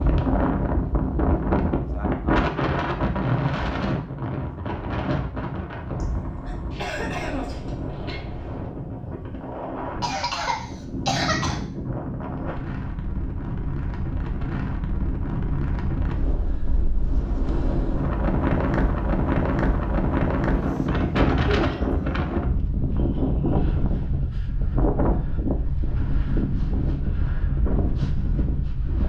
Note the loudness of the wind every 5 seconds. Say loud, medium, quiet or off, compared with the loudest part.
loud, medium, medium, loud, loud, loud.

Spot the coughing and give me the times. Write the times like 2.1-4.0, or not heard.
6.0-8.2, 10.0-11.6, 21.4-22.0.